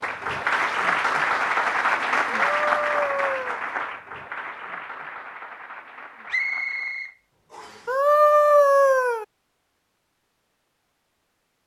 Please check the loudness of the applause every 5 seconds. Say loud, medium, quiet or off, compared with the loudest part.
loud, quiet, off.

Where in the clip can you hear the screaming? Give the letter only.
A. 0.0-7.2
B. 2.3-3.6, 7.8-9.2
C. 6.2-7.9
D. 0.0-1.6
B.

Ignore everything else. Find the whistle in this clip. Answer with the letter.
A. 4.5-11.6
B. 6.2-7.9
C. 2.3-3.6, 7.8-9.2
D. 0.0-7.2
B.